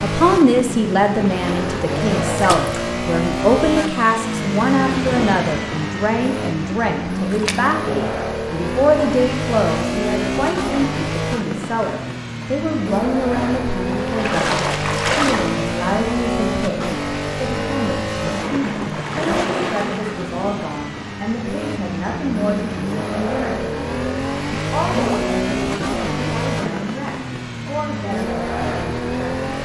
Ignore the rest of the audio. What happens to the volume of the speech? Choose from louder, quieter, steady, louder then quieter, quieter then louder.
quieter.